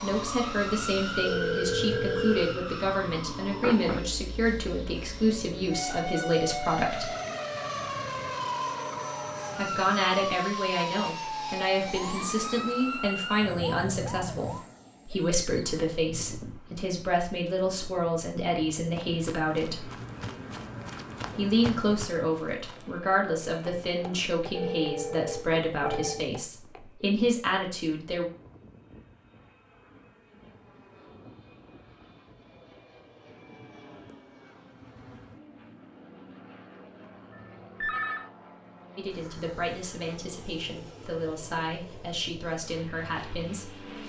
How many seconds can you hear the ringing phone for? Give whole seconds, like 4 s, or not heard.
4 s.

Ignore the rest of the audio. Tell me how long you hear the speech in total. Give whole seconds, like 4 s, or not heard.
29 s.